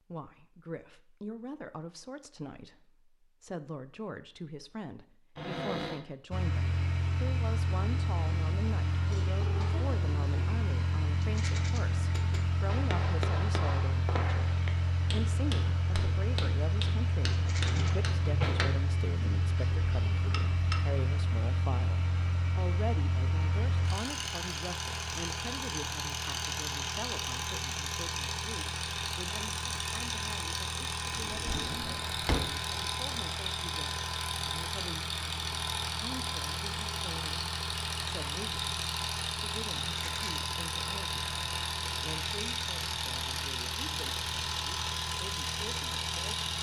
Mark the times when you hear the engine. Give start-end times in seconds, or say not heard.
6.3-46.5.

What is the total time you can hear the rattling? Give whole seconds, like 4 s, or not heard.
2 s.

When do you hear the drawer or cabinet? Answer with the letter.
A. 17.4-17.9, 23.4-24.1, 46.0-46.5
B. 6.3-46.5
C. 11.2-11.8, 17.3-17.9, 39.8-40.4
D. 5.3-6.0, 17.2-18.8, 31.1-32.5
D.